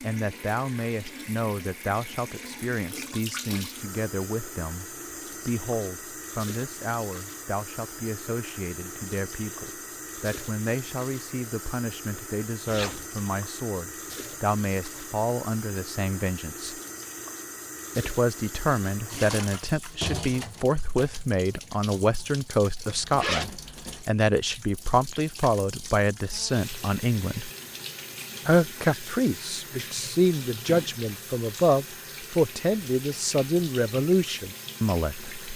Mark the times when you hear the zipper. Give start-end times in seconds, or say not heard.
12.7-13.1, 22.9-24.1.